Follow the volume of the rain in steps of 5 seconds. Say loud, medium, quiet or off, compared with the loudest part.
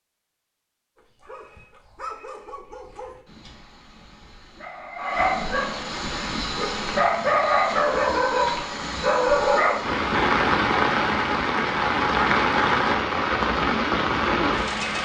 off, quiet, loud.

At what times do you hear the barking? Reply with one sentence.
The barking can be heard from 0.9 to 10.1 s.